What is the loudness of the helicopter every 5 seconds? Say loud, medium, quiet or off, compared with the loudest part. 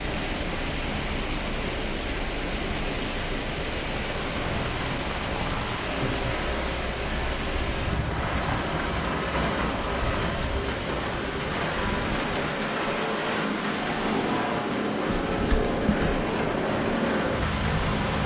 medium, medium, loud, loud.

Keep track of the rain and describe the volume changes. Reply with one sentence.
The loudness of the rain stays about the same.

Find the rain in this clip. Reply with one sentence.
The rain can be heard from 0.0 to 18.2 s.